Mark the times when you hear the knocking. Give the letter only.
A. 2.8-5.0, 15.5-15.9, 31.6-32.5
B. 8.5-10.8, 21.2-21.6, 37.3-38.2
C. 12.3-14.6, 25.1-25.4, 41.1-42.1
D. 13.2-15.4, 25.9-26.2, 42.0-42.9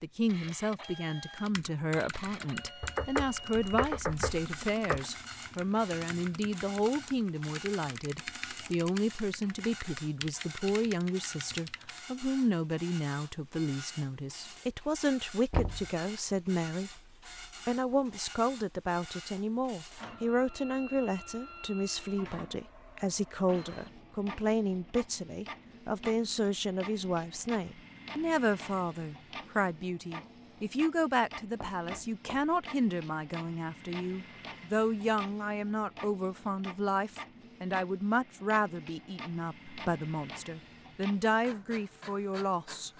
A.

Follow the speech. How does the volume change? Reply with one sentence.
The volume of the speech stays about the same.